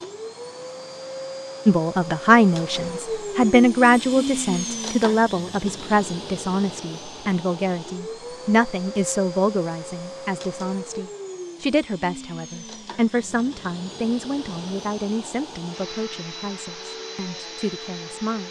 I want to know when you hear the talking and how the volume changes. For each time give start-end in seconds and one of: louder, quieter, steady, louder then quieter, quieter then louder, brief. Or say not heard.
1.6-18.4 quieter.